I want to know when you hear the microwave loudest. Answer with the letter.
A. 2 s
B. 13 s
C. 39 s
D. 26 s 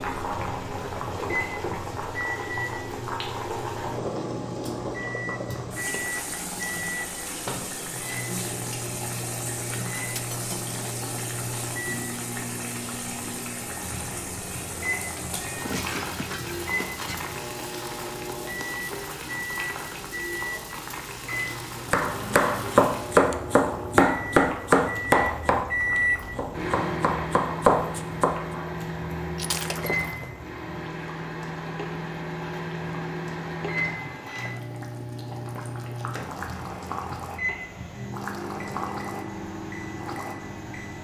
D.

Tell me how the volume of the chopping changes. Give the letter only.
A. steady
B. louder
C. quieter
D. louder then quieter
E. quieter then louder
E.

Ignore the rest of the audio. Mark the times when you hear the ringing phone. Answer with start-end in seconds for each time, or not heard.
not heard.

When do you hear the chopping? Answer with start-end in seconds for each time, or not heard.
21.9-28.6.